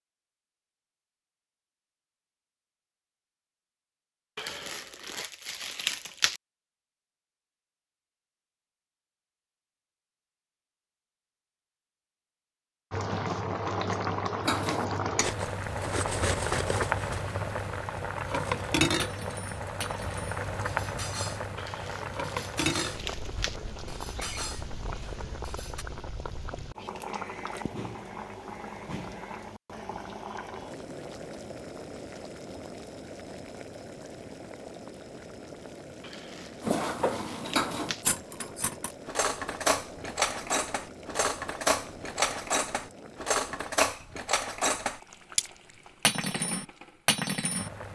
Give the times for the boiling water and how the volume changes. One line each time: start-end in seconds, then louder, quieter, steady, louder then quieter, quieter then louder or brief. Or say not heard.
12.9-47.9 quieter.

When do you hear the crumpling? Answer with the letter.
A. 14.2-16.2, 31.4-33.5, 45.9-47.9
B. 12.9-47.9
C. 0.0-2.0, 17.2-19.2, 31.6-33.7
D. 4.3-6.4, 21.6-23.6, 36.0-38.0
D.